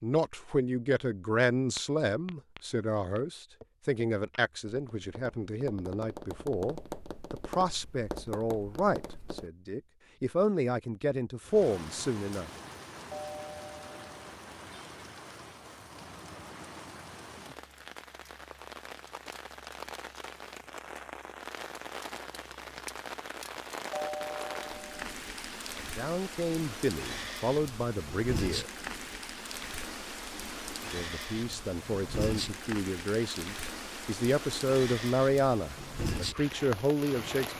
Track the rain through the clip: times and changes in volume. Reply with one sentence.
The rain can be heard from 11.4 to 37.5 s, getting louder.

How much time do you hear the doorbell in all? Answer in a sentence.
The doorbell can be heard for 2 seconds in total.